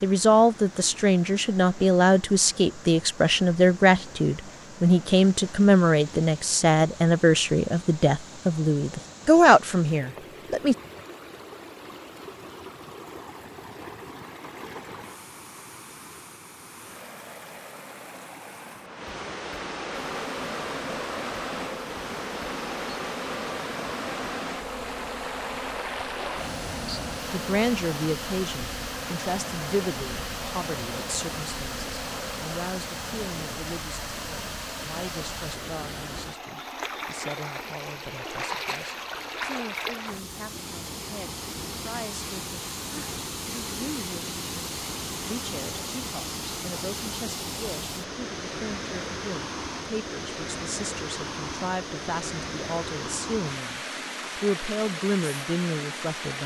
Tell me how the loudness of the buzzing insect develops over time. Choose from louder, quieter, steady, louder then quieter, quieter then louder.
steady.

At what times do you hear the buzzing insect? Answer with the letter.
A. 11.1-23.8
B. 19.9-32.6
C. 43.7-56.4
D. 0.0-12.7
B.